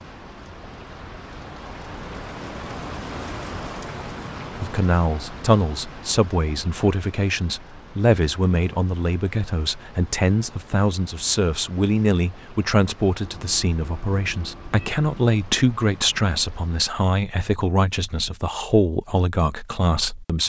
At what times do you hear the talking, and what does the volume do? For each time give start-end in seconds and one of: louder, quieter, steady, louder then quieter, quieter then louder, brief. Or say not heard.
4.5-20.4 steady.